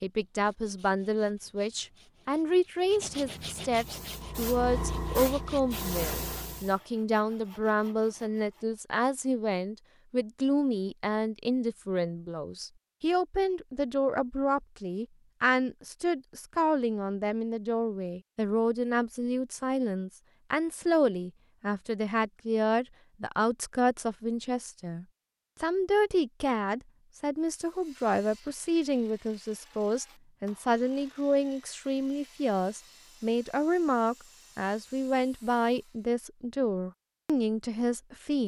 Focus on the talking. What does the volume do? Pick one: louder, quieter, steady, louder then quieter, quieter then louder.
steady.